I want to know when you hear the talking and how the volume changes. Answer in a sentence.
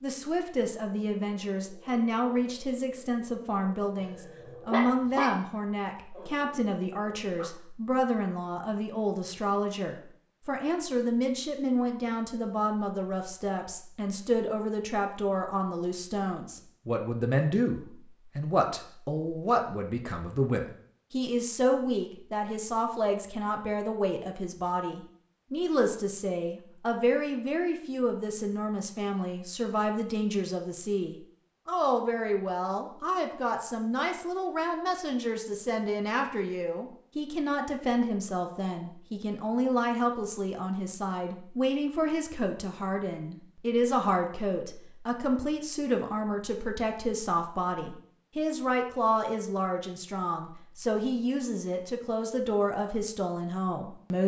The talking can be heard from 0.0 to 54.2 s, at a steady volume.